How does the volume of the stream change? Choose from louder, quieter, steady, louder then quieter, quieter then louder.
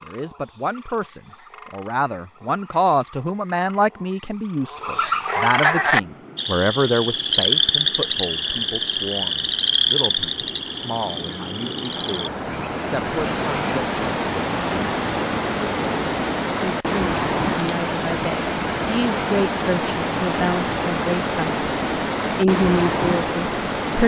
louder.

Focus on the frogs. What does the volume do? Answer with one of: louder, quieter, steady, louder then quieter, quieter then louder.
louder then quieter.